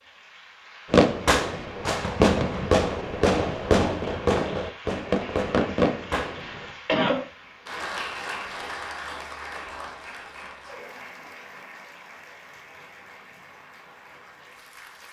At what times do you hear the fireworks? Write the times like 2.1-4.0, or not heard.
0.9-6.8.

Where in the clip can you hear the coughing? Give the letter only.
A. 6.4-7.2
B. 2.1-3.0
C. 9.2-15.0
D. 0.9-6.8
A.